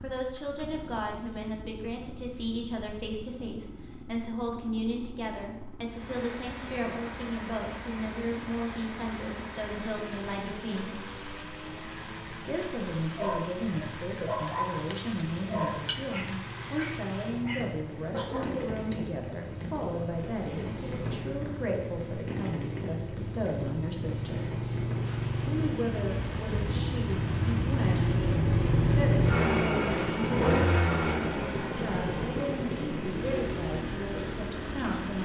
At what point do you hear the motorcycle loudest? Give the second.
29 s.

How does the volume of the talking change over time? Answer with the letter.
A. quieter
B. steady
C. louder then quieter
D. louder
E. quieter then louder
B.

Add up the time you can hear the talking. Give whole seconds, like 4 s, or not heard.
32 s.